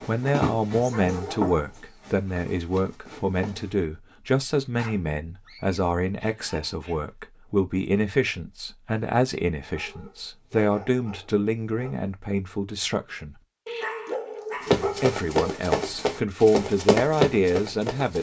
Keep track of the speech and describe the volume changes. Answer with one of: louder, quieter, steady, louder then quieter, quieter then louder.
steady.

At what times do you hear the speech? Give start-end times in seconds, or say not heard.
0.1-13.4, 15.0-18.1.